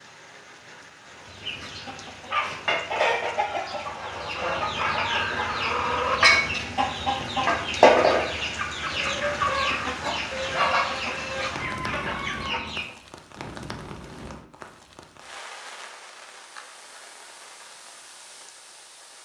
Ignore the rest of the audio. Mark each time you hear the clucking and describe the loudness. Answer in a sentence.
The clucking can be heard from 1.2 to 12.9 s, getting louder then quieter.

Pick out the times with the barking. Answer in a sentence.
The barking can't be heard in this clip.